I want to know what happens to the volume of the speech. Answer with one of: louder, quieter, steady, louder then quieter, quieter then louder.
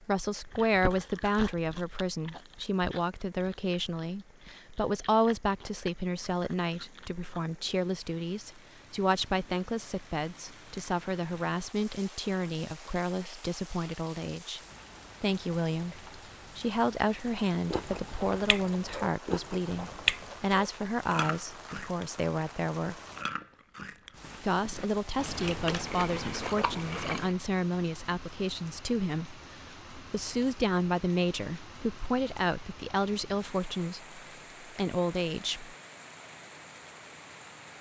steady.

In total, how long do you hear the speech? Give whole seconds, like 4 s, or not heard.
34 s.